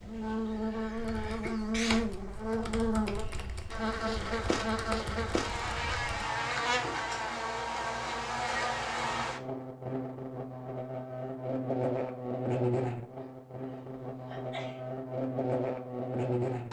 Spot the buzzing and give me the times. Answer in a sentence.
You can hear the buzzing from 0.0 to 16.6 s.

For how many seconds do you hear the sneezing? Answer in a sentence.
You can hear the sneezing for 3 seconds altogether.